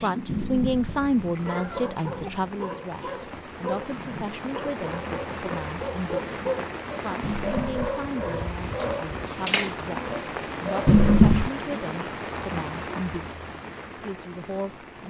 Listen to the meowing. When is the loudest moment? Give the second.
11 s.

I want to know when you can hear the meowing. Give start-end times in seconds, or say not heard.
0.2-2.3, 7.2-8.0, 10.8-11.5.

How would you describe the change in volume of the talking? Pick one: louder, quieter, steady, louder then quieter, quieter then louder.
quieter.